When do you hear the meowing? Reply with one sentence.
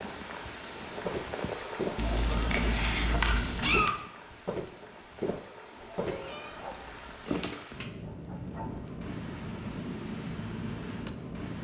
You can hear the meowing from 1.9 to 4.0 s and from 6.0 to 7.8 s.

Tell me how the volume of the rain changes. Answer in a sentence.
The loudness of the rain goes down, then up.